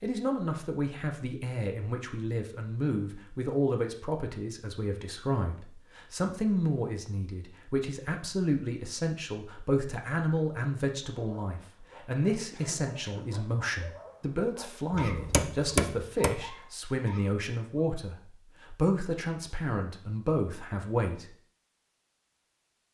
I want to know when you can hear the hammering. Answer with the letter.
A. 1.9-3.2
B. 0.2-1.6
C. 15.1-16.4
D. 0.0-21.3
C.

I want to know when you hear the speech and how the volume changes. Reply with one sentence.
You can hear the speech from 0.0 to 21.3 s, at a steady volume.